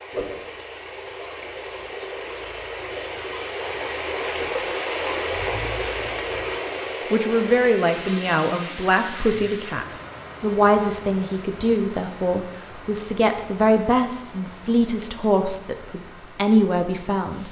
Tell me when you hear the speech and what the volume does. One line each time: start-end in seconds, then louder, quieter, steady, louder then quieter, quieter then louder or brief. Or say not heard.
7.1-17.4 steady.